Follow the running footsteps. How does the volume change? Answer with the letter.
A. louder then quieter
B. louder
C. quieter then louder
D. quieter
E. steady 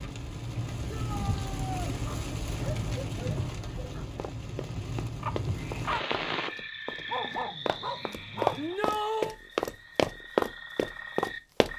B.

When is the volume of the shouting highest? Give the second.
9 s.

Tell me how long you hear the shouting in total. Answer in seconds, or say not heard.
2 s.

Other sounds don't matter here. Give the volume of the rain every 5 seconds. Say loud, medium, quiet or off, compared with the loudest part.
loud, loud, off.